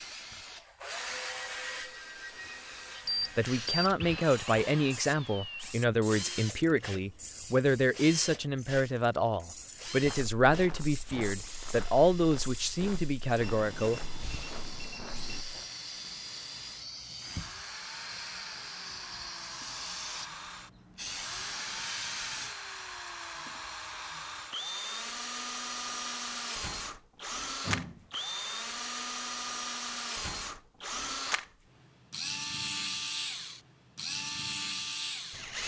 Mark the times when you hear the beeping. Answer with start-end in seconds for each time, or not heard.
3.0-4.2, 13.5-15.4, 27.6-28.4.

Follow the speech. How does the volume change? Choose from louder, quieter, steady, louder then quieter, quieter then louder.
steady.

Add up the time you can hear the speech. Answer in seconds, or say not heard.
11 s.